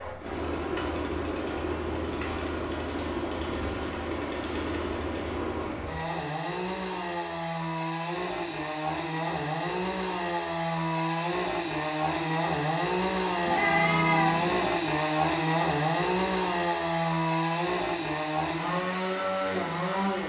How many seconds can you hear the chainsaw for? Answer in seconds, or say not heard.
20 s.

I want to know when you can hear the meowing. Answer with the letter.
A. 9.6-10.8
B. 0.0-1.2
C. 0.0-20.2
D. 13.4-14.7
D.